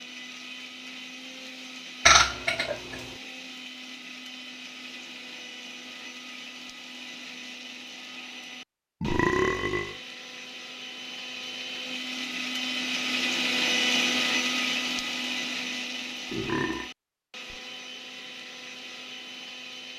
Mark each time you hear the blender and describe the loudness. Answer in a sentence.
The blender can be heard from 0.0 to 19.9 s, getting louder then quieter.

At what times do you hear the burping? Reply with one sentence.
You can hear the burping from 2.0 to 3.0 s, from 9.0 to 10.0 s and from 16.3 to 16.9 s.